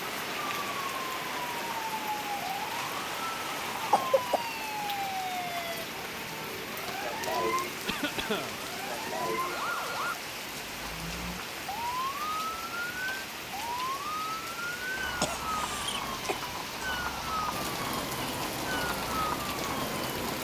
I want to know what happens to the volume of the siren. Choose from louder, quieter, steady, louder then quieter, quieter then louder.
steady.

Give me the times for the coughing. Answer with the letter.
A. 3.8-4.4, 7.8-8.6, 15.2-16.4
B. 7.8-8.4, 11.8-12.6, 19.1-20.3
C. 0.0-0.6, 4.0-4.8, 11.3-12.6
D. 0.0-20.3
A.